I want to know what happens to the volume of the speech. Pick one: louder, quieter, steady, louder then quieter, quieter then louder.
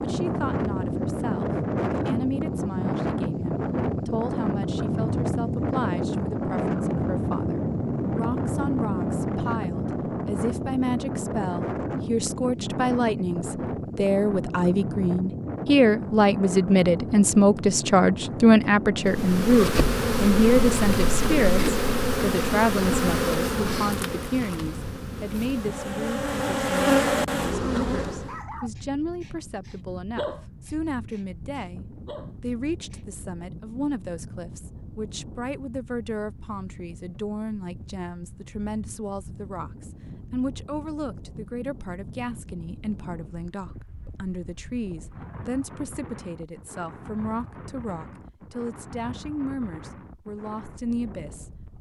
louder then quieter.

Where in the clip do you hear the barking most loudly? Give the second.
30 s.